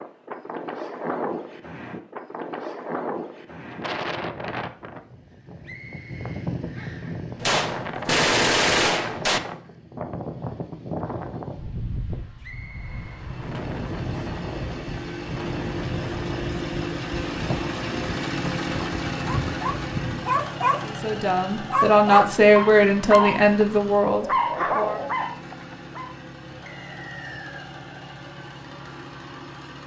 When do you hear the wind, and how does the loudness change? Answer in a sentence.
You can hear the wind from 0.0 to 20.3 s, at a steady volume.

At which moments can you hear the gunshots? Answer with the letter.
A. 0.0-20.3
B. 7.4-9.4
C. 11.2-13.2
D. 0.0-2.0
B.